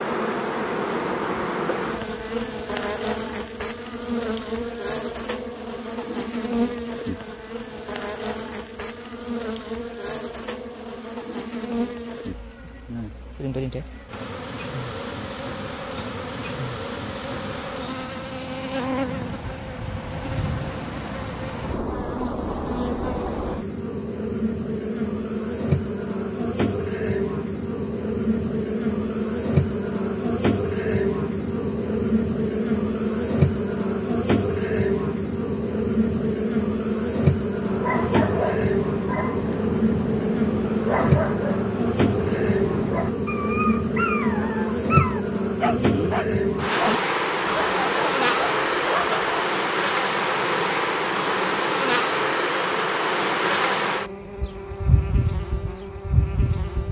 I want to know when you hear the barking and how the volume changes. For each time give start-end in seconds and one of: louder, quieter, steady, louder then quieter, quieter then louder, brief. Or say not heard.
37.6-49.2 steady.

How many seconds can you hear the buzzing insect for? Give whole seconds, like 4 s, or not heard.
57 s.